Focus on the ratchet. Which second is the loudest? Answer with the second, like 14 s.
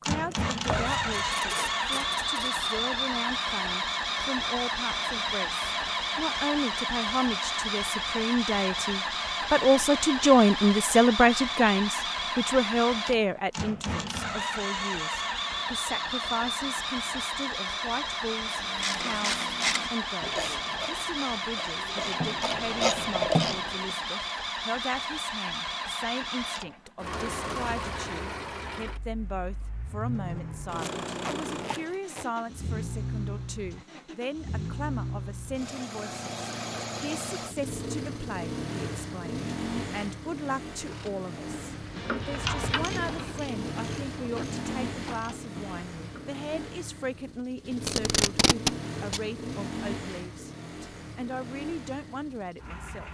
23 s.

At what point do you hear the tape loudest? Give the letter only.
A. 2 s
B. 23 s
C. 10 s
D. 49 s
D.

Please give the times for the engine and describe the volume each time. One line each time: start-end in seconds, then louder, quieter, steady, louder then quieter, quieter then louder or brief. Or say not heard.
0.0-53.0 quieter.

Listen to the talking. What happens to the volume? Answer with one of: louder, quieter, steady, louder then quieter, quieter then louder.
quieter.